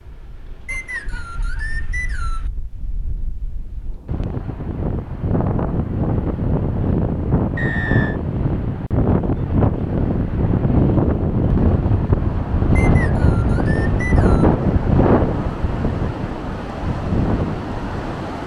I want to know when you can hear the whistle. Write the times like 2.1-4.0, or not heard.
0.7-2.5, 7.5-8.2, 12.8-14.6.